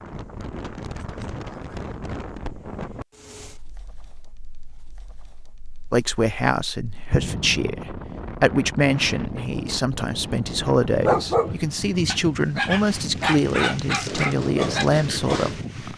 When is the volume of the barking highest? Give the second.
11 s.